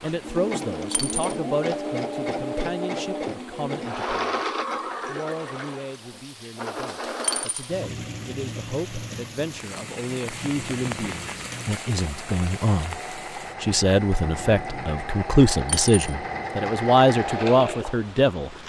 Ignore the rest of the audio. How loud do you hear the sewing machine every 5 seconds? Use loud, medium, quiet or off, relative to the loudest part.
loud, medium, medium, loud.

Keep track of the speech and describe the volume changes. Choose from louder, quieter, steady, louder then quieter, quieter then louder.
quieter then louder.